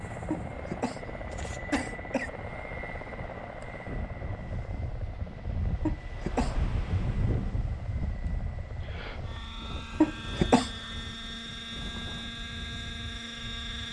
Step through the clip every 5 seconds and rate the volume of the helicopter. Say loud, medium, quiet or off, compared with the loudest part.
loud, medium, loud.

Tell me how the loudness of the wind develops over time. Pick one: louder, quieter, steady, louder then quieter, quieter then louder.
louder then quieter.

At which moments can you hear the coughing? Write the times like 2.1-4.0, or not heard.
0.3-2.3, 5.8-6.5, 10.0-10.7.